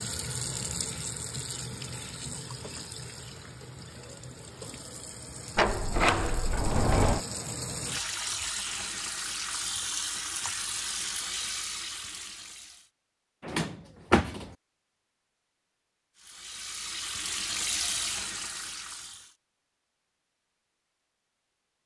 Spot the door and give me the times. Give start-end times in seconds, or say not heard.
5.5-7.2, 13.4-14.5.